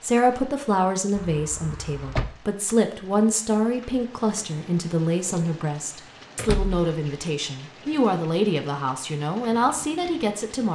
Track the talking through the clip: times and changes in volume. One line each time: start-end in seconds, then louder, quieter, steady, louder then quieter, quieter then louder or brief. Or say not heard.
0.0-10.7 steady.